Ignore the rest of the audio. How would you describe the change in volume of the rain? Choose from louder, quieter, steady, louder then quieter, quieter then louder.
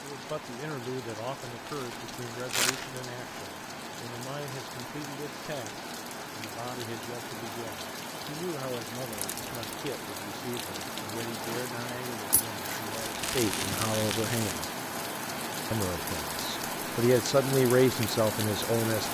louder.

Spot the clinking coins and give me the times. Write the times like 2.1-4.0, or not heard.
12.3-12.8.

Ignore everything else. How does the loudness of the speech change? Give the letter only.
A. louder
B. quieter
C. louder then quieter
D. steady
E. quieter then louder
A.